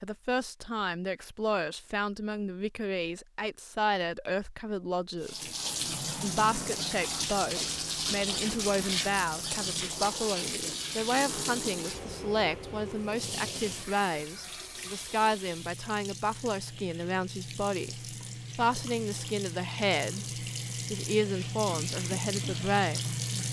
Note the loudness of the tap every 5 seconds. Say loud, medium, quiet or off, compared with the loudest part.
off, loud, loud, medium, loud.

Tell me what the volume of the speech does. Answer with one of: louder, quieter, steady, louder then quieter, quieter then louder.
steady.